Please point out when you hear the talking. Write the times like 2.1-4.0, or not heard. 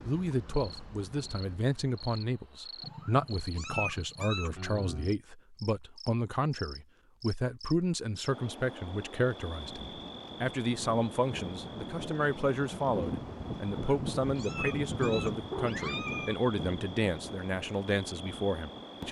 0.0-19.0.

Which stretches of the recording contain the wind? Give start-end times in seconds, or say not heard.
9.5-19.0.